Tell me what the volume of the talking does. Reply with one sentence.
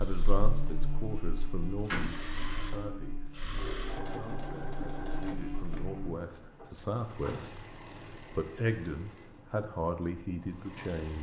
The loudness of the talking goes down, then up.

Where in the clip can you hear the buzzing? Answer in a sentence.
You can hear the buzzing from 0.0 to 6.2 s.